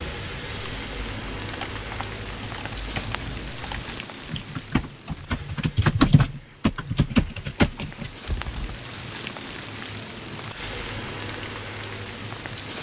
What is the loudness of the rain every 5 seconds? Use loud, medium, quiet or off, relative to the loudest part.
loud, medium, loud.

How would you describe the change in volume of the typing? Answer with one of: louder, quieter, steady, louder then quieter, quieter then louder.
louder.